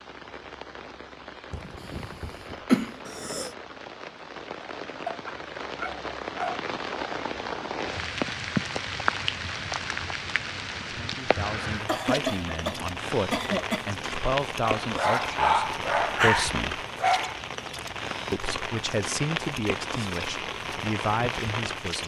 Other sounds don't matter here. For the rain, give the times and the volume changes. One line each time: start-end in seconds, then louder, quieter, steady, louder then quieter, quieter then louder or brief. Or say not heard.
0.0-22.0 louder.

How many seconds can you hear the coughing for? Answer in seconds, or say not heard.
4 s.